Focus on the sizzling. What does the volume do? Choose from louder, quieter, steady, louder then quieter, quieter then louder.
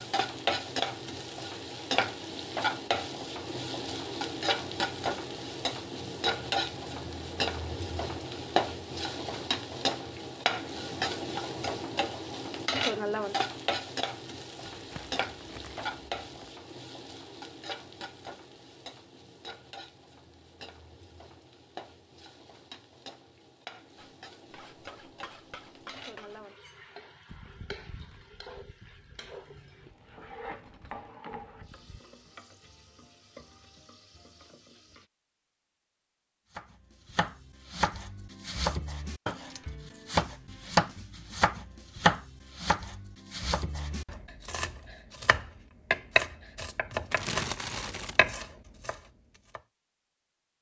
quieter.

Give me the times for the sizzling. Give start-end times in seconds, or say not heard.
0.0-35.0.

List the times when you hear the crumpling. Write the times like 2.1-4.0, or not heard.
14.6-16.6, 47.1-48.2.